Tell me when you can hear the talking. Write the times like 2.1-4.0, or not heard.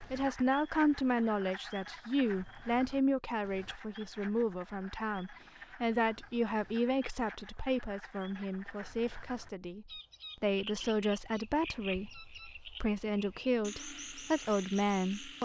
0.1-15.4.